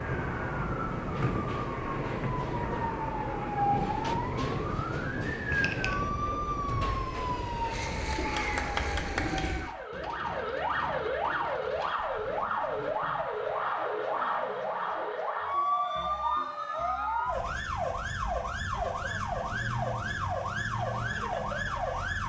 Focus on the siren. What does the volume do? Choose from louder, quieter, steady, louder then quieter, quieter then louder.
steady.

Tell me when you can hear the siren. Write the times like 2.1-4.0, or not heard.
0.0-22.2.